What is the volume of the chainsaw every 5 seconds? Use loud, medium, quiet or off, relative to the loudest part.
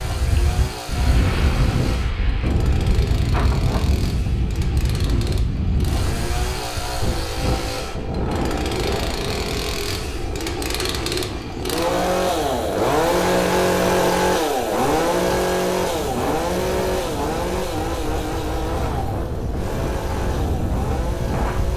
quiet, medium, loud, loud, medium.